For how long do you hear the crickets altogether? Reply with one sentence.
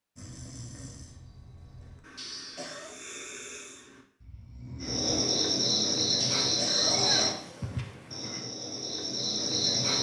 You can hear the crickets for 5 seconds altogether.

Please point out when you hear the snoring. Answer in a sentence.
The snoring can be heard from 0.1 to 5.2 s.